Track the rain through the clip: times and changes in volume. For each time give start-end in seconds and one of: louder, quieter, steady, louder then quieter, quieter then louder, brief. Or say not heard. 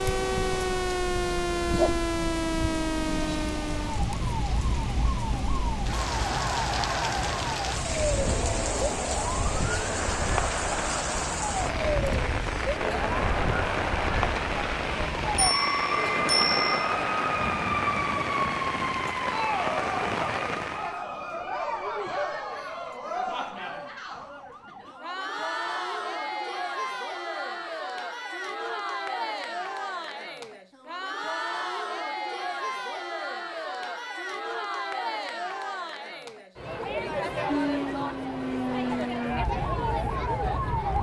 0.0-21.1 steady.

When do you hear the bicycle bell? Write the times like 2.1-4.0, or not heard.
15.3-16.9.